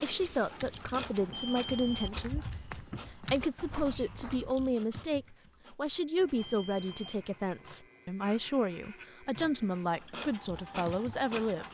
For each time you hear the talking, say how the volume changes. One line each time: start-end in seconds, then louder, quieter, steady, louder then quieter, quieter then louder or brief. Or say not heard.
0.0-11.7 steady.